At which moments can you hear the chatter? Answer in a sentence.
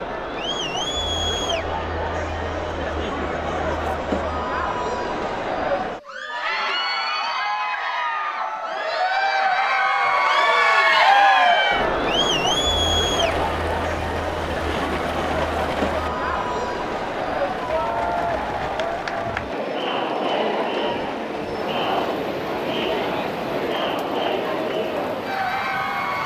You can hear the chatter from 0.0 to 26.2 s.